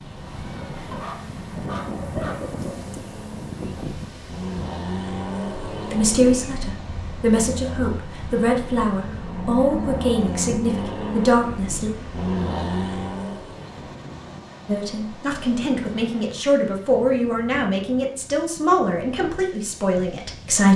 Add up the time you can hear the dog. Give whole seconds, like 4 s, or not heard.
2 s.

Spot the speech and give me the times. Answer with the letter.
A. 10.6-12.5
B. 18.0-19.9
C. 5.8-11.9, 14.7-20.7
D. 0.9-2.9
C.